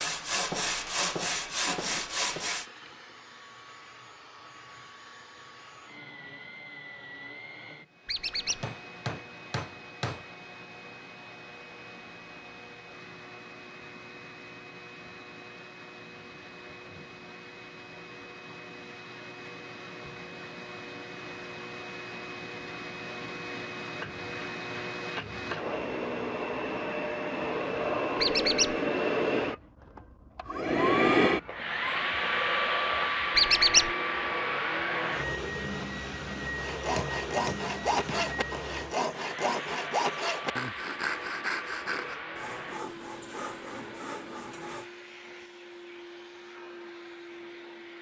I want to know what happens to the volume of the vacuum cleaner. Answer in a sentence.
The volume of the vacuum cleaner goes up, then down.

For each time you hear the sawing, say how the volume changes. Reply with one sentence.
You can hear the sawing briefly from 0.0 to 2.6 s; and from 36.5 to 44.9 s, getting quieter.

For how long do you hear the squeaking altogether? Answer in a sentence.
The squeaking can be heard for 2 seconds in total.